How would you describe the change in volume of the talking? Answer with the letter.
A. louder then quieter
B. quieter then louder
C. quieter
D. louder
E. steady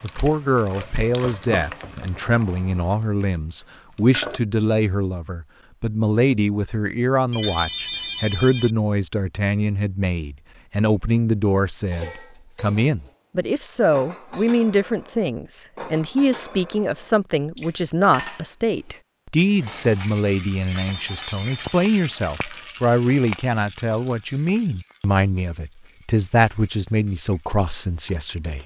E.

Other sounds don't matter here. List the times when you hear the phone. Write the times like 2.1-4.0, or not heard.
7.3-8.8, 20.6-21.9.